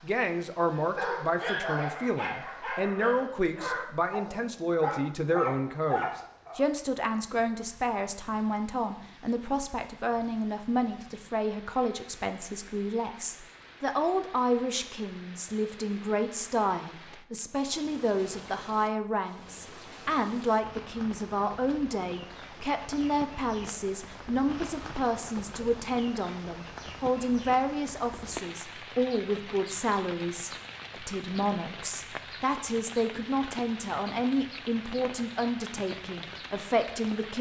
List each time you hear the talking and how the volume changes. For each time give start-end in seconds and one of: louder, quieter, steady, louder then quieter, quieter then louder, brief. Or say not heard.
0.0-37.3 steady.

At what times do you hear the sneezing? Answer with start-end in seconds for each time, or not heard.
not heard.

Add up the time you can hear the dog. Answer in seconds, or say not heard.
6 s.